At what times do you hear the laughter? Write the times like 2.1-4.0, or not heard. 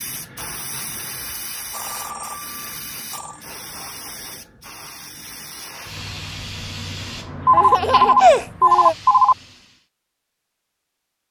7.5-8.9.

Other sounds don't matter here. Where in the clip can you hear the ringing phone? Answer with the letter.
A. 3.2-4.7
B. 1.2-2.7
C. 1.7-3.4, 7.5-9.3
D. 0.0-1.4
C.